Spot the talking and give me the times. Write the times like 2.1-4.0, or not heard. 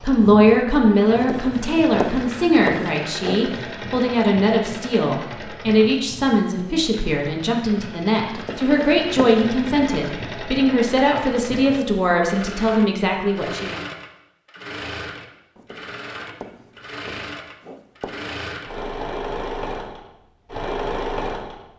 0.0-13.8.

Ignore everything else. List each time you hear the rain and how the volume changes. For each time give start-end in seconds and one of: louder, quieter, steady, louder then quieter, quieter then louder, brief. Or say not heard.
not heard.